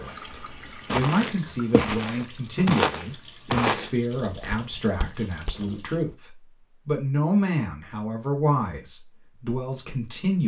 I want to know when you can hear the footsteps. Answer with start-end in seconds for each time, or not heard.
0.8-6.2.